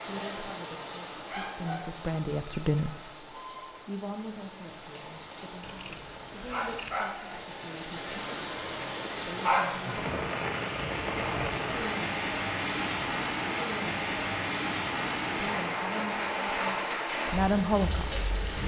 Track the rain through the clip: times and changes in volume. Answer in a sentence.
The rain can be heard from 0.0 to 18.6 s, getting louder.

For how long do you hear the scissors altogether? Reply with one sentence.
The scissors can be heard for 2 seconds in total.